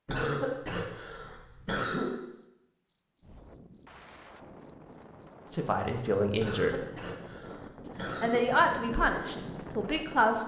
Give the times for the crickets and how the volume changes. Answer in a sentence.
The crickets can be heard from 0.1 to 10.4 s, getting louder.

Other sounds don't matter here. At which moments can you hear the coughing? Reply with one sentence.
The coughing can be heard from 0.1 to 2.1 s and from 6.3 to 8.4 s.